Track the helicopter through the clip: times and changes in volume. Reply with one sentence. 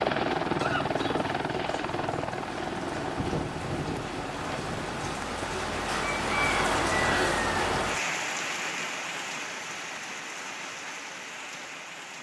You can hear the helicopter from 0.0 to 5.2 s, getting quieter.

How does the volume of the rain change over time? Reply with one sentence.
The volume of the rain goes up, then down.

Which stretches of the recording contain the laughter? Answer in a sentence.
You can hear the laughter from 0.6 to 1.2 s.